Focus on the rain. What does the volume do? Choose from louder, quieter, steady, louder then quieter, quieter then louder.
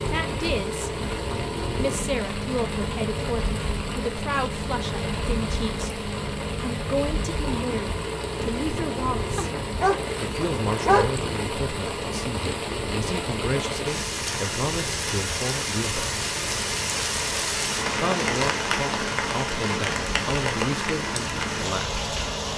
louder.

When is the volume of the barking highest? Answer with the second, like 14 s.
11 s.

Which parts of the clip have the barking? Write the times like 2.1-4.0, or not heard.
9.3-11.2.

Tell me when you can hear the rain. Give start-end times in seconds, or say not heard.
0.0-22.5.